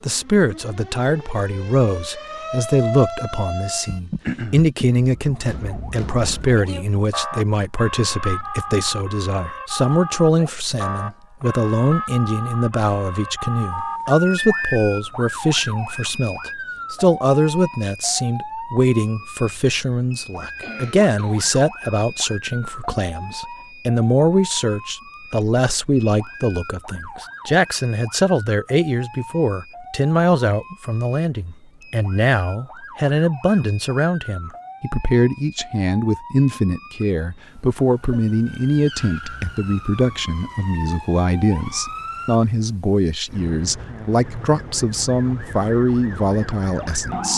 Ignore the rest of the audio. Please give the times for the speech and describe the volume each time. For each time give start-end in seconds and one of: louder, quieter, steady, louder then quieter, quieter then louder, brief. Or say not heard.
0.0-47.3 steady.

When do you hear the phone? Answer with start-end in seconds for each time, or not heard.
13.7-14.8.